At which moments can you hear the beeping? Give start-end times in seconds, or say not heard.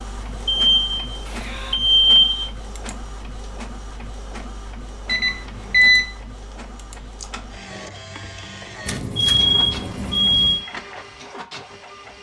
0.5-2.5, 5.0-6.0, 8.8-10.7.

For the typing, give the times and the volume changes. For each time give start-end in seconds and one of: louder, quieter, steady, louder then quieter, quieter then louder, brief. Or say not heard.
not heard.